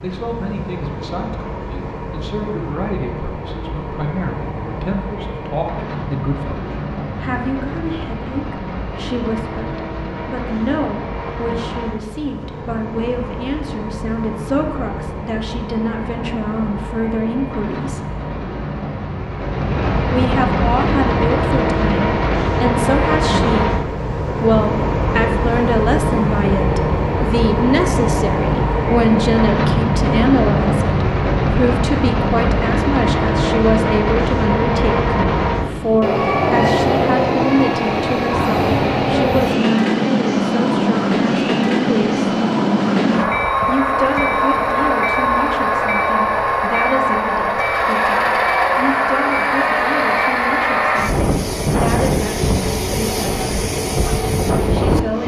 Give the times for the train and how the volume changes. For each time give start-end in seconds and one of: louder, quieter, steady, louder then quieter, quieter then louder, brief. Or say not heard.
0.0-55.2 louder.